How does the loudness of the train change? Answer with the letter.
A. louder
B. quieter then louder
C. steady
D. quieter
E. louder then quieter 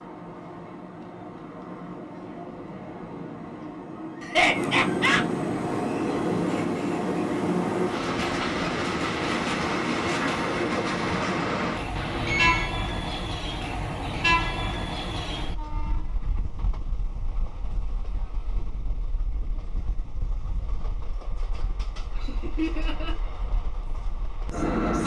E.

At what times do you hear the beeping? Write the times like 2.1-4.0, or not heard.
11.9-12.7.